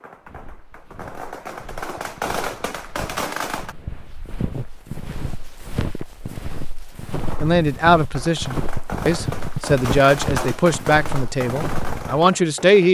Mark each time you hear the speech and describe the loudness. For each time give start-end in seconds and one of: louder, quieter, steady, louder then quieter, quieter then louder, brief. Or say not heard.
7.4-12.8 steady.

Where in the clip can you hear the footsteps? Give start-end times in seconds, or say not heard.
0.2-12.2.